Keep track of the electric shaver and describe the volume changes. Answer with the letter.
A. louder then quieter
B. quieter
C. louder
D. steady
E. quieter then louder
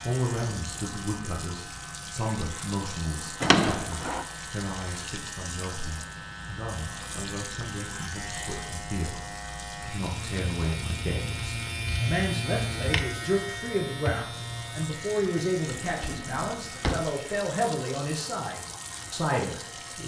A.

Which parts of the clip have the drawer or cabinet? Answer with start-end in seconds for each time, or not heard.
3.4-4.2, 15.8-17.2.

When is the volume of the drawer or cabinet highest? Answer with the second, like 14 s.
4 s.